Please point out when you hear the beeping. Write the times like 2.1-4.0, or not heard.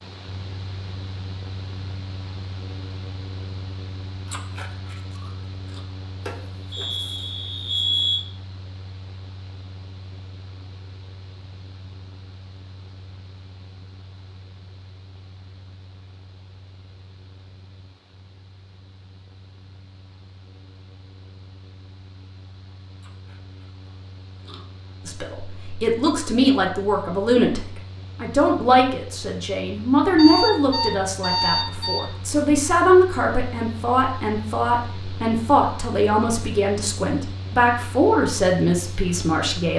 6.2-8.2, 30.1-32.2.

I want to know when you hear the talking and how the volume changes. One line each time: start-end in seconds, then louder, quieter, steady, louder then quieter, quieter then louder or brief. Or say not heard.
25.1-39.7 steady.